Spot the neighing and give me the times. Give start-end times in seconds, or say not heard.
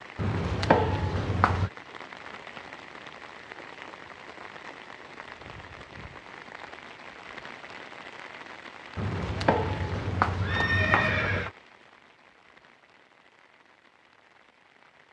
0.1-1.7, 8.9-11.5.